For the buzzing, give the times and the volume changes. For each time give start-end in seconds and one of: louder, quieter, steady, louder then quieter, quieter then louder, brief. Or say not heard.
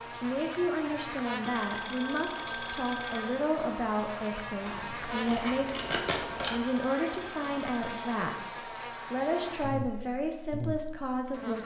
0.0-11.6 steady.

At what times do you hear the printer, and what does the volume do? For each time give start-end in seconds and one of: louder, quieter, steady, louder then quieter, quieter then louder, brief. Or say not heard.
not heard.